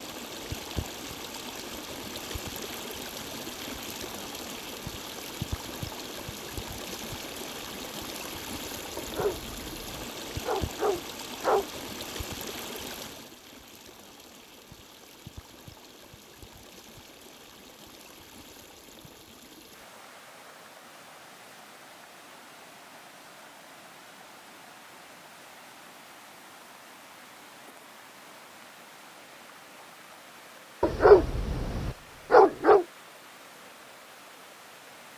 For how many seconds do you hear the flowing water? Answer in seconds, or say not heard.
35 s.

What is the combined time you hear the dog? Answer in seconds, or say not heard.
5 s.